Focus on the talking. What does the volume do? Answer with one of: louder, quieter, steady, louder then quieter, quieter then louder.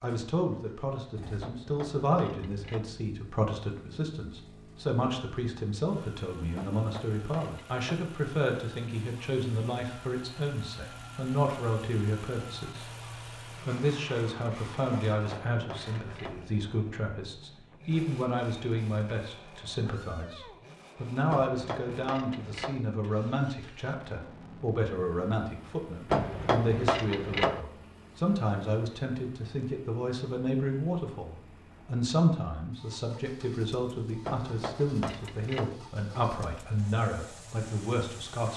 steady.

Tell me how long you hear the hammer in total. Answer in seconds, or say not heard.
9 s.